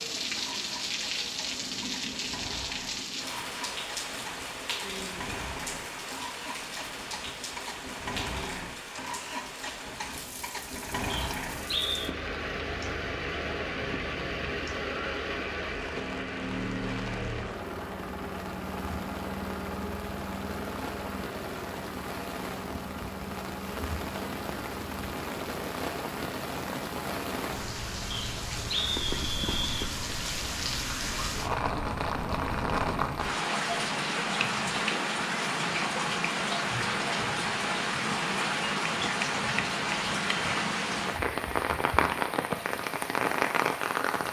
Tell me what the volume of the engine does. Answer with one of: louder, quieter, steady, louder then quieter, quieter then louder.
louder then quieter.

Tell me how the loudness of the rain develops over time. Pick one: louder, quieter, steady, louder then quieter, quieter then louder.
quieter then louder.